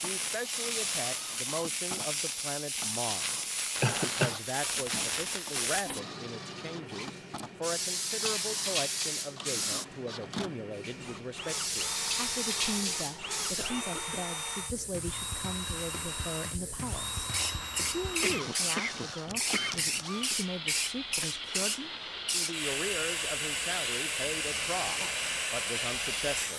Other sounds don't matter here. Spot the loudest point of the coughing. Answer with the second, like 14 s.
4 s.